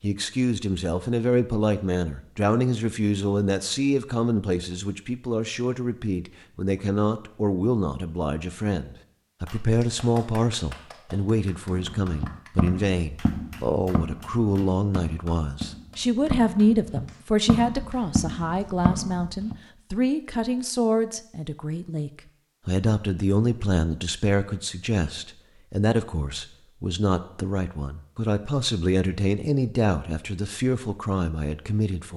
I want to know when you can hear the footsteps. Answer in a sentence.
You can hear the footsteps from 11.7 to 19.6 s.